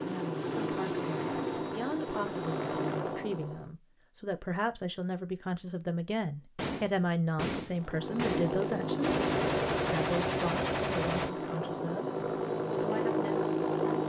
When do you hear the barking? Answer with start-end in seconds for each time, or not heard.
not heard.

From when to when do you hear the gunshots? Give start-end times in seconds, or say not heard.
6.5-11.3.